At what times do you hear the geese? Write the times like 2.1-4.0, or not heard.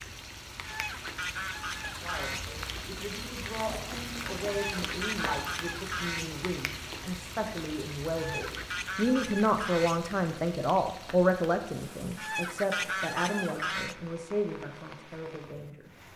0.6-2.5, 4.5-6.5, 8.2-10.2, 12.2-13.9.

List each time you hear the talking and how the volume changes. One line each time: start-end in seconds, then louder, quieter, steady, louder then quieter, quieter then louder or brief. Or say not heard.
2.0-15.9 louder then quieter.